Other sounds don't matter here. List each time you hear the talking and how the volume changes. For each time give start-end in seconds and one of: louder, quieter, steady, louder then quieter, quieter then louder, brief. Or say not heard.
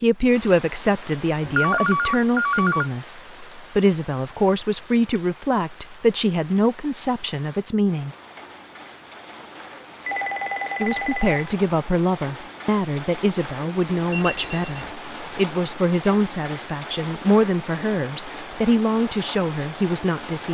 0.0-8.2 steady
10.8-20.5 steady.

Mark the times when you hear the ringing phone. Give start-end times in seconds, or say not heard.
1.4-2.9, 10.1-11.6, 14.1-14.9.